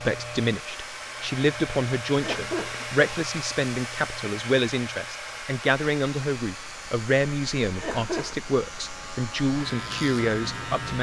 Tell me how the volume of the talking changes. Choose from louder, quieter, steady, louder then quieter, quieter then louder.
steady.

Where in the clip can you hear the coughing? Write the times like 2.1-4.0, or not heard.
2.1-3.0, 7.8-8.3.